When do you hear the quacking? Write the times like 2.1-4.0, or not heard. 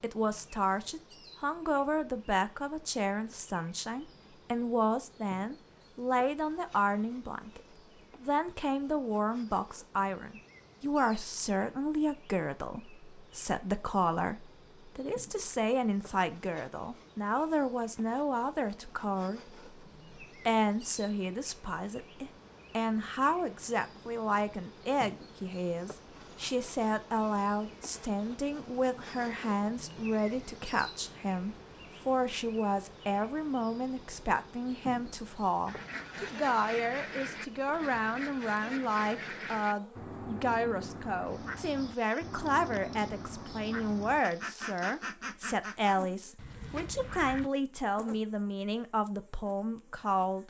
35.6-47.5.